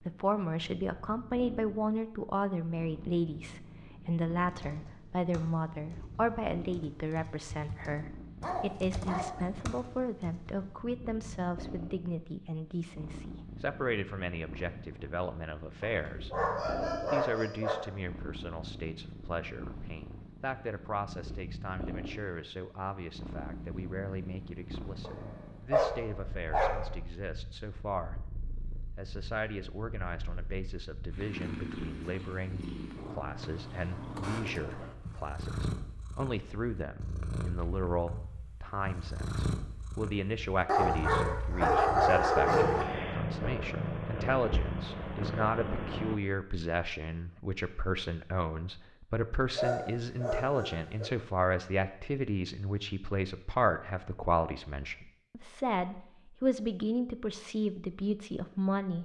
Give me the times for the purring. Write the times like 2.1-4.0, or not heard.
0.0-46.2.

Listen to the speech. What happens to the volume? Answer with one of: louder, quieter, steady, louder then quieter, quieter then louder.
quieter then louder.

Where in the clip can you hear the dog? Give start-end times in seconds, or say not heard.
8.4-9.4, 15.8-17.8, 25.0-26.8, 40.6-42.9, 49.5-51.1.